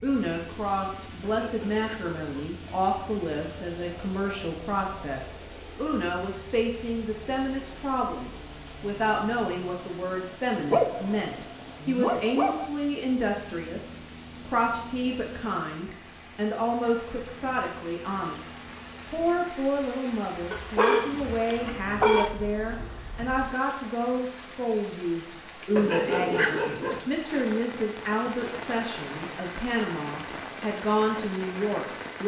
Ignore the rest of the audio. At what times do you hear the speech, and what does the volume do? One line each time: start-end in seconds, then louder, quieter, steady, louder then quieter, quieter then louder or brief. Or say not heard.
0.0-32.2 steady.